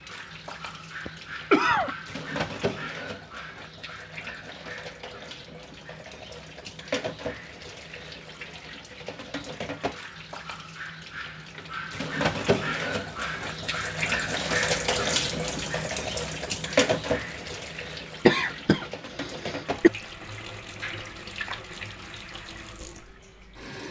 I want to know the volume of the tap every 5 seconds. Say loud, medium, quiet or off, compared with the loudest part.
medium, medium, loud, loud, medium.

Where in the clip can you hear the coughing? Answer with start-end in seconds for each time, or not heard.
1.1-1.9, 18.2-19.9.